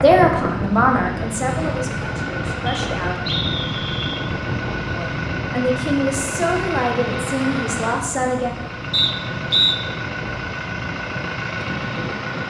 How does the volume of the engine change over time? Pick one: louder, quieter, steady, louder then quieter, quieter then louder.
steady.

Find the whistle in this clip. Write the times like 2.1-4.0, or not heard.
2.6-4.2, 8.9-9.8.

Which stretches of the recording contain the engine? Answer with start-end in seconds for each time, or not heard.
0.0-12.4.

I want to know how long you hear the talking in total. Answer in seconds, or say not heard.
7 s.